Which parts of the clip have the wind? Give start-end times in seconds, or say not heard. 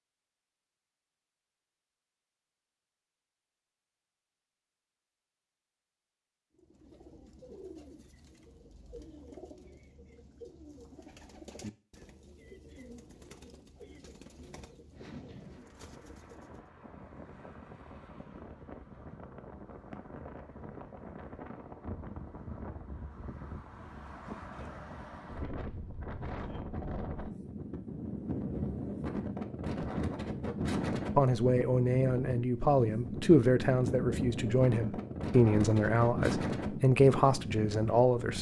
14.9-38.3.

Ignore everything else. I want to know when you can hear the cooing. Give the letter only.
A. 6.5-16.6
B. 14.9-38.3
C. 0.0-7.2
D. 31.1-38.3
A.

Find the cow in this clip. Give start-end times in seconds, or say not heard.
not heard.